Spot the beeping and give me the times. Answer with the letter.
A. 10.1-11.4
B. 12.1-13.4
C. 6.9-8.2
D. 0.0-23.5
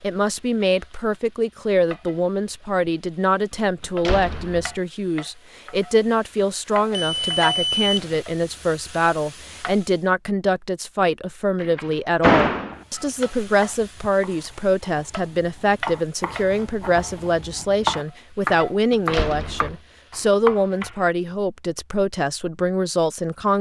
C.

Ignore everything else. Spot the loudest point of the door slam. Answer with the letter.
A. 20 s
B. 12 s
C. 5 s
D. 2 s
B.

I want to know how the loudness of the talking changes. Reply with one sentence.
The loudness of the talking stays about the same.